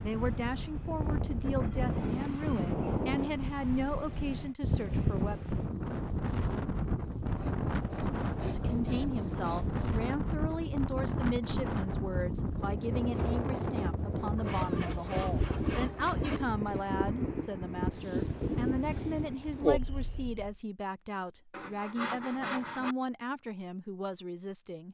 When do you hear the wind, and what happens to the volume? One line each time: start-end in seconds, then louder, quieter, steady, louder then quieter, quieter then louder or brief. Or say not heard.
0.0-20.6 steady.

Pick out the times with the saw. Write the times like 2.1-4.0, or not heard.
1.6-3.1, 7.2-9.8, 14.3-16.4, 21.5-22.9.